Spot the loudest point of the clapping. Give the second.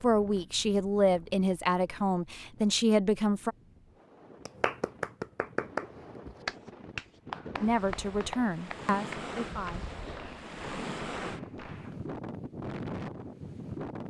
6 s.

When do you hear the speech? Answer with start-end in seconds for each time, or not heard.
0.0-3.5, 7.6-9.9.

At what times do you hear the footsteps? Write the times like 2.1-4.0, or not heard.
not heard.